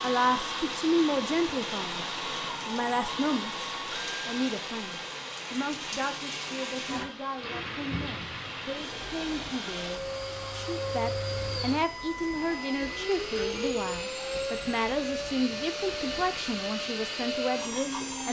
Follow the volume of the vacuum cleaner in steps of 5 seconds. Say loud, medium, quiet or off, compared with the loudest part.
loud, medium, loud, loud.